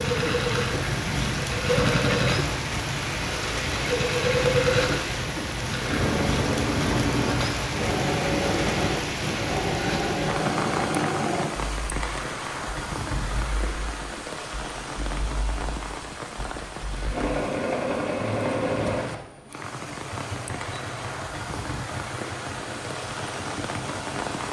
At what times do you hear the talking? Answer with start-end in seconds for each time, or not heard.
not heard.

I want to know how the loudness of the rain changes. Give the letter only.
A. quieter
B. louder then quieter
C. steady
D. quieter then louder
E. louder
A.